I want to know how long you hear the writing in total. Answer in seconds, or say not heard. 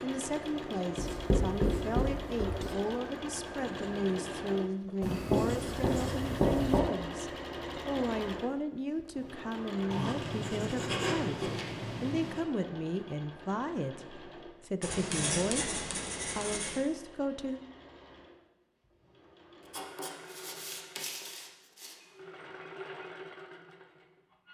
10 s.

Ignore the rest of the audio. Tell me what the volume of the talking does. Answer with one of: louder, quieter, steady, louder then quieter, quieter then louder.
steady.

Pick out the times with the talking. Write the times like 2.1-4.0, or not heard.
0.0-17.6.